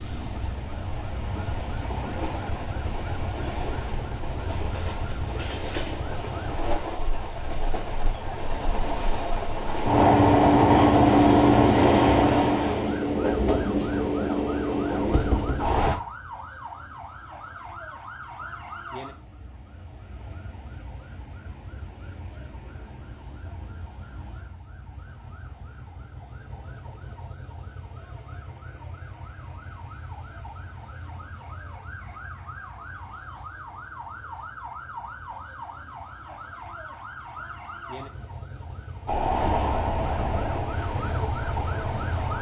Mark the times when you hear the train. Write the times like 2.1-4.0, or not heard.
0.0-15.9, 39.0-42.3.